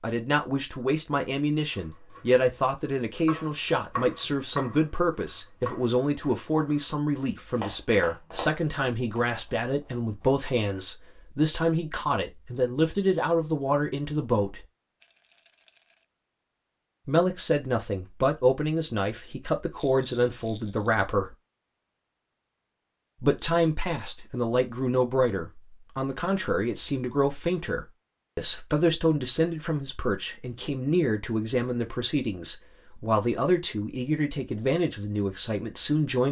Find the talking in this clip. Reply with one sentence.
You can hear the talking from 0.0 to 14.6 s, from 17.1 to 21.3 s and from 23.2 to 36.2 s.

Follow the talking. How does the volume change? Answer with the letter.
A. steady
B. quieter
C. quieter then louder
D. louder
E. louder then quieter
A.